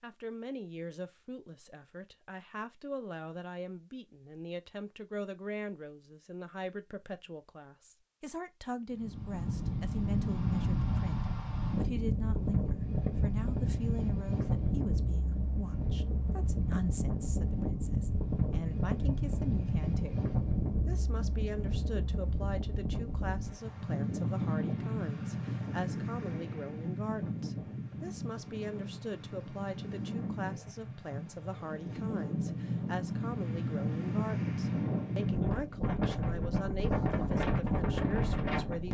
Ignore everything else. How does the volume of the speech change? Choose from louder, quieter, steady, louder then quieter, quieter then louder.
steady.